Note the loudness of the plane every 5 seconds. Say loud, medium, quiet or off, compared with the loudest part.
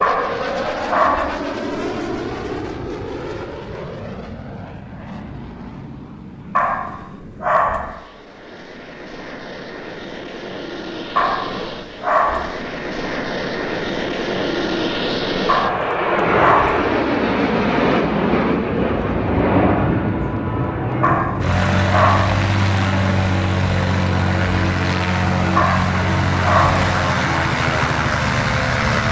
medium, quiet, medium, loud, loud, loud.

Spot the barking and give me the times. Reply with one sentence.
The barking can be heard from 0.0 to 1.4 s, from 6.5 to 8.0 s, from 11.2 to 12.6 s, from 15.4 to 16.8 s, from 21.0 to 22.4 s and from 25.6 to 26.9 s.